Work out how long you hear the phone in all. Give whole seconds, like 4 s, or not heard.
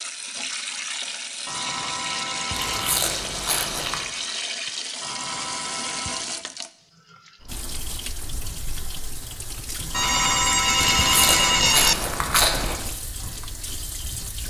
5 s.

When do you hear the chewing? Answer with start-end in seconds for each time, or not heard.
2.5-4.0, 10.8-12.8.